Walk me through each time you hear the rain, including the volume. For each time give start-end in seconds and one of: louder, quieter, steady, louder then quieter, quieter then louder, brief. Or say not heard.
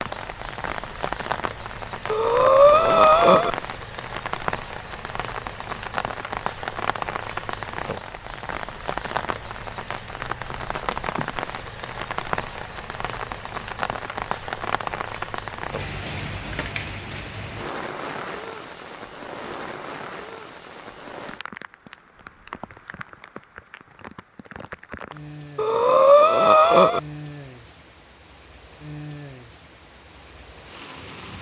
0.0-31.3 quieter.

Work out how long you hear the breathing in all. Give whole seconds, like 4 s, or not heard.
3 s.